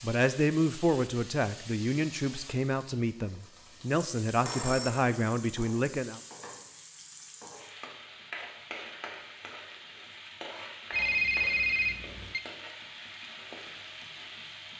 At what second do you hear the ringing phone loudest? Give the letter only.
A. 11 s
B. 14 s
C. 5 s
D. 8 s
A.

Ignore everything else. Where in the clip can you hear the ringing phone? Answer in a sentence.
The ringing phone can be heard from 4.5 to 5.0 s and from 10.9 to 12.4 s.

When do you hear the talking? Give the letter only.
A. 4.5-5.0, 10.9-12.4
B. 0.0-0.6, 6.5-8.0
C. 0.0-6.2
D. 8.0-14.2
C.